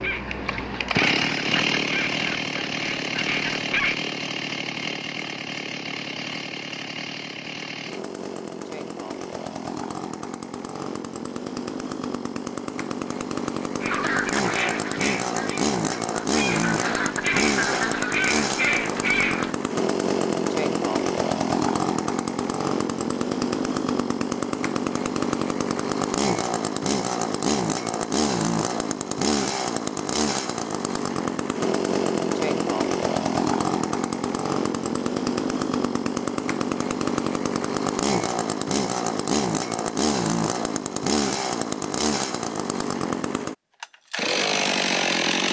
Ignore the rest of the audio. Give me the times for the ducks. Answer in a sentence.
You can hear the ducks from 0.0 to 4.0 s and from 13.8 to 19.6 s.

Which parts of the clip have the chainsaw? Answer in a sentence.
The chainsaw can be heard from 0.0 to 45.4 s.